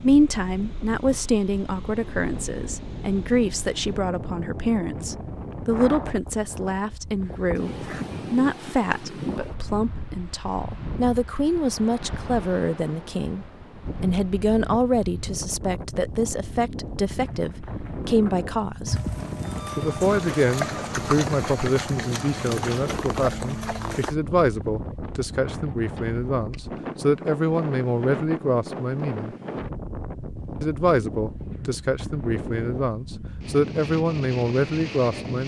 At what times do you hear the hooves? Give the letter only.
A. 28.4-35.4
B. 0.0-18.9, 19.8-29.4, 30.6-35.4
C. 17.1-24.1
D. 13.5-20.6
C.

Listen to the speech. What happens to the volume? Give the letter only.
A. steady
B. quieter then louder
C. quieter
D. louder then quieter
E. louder
A.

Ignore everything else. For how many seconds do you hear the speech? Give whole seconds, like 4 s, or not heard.
33 s.